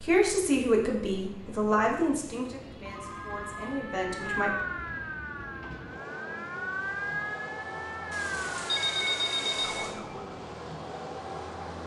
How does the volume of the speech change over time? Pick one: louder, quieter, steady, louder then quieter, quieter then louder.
quieter then louder.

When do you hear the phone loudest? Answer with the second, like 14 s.
9 s.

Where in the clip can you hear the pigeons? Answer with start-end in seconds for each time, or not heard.
not heard.